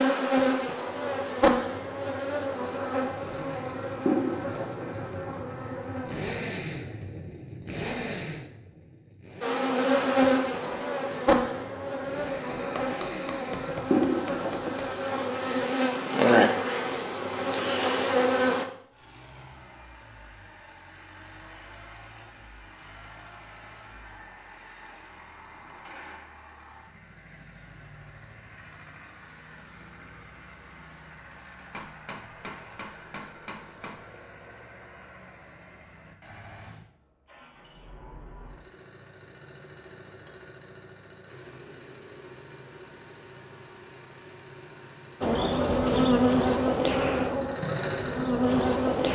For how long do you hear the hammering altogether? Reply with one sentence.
You can hear the hammering for 5 seconds altogether.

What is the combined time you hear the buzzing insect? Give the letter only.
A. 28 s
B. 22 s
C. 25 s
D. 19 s
D.